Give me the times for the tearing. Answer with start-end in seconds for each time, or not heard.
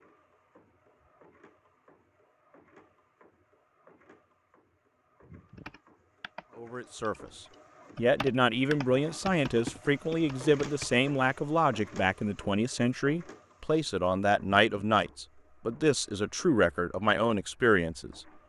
not heard.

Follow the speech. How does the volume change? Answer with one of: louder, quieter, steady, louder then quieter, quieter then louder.
steady.